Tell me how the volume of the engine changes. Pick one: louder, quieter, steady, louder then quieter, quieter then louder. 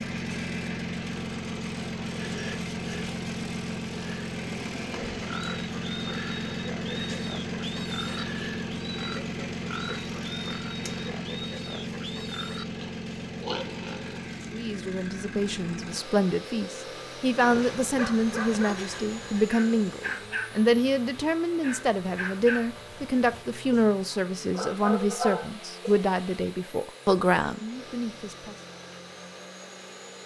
quieter.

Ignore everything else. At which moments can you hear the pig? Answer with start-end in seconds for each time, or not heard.
5.2-14.2.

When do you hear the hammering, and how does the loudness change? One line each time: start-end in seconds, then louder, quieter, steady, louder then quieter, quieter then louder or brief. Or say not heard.
not heard.